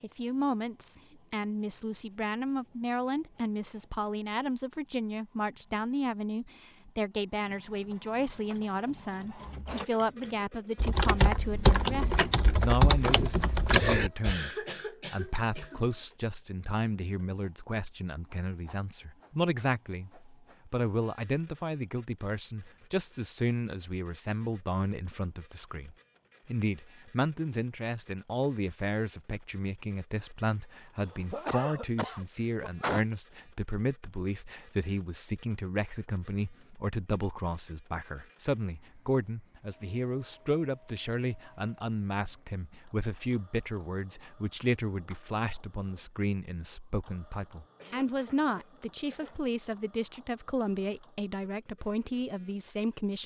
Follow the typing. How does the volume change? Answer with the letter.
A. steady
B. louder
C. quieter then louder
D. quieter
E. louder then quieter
B.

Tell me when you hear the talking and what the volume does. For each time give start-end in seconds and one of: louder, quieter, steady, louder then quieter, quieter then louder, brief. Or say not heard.
0.0-53.2 steady.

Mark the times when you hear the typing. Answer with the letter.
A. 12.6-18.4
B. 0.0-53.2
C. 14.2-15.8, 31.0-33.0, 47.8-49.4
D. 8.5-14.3
D.